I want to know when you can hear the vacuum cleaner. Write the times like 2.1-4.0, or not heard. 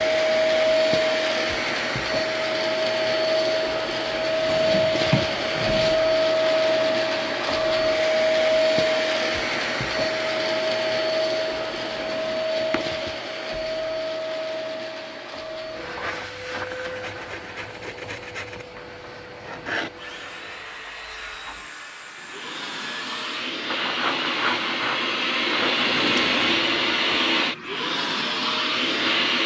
0.0-29.4.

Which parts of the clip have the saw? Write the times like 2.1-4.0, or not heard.
16.9-25.9.